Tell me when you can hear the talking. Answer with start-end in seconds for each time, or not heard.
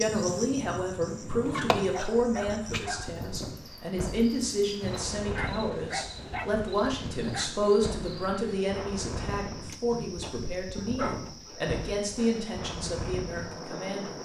0.0-14.1.